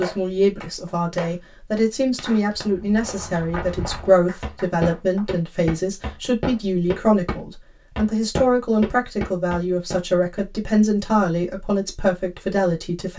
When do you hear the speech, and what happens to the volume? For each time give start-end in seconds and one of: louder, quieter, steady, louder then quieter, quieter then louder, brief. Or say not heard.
0.0-13.1 steady.